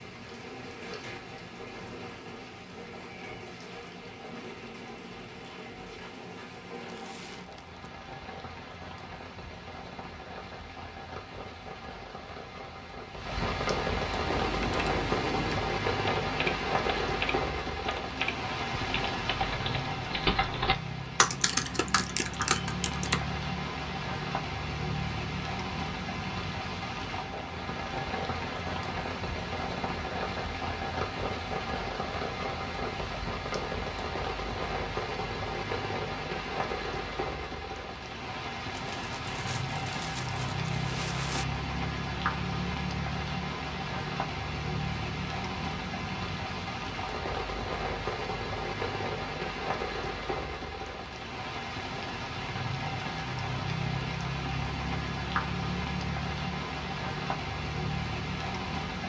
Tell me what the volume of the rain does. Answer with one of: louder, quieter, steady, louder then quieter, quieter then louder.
louder.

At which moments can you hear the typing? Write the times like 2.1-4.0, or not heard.
14.2-23.2.